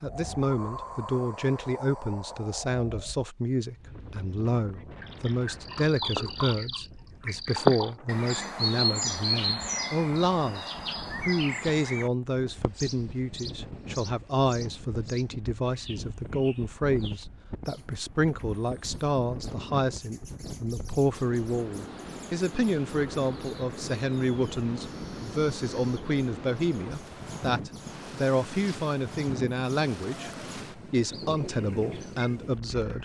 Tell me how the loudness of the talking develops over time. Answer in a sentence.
The volume of the talking stays about the same.